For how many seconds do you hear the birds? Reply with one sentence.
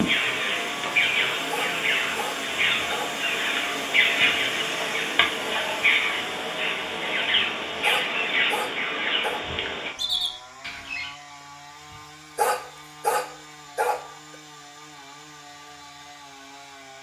You can hear the birds for 11 seconds altogether.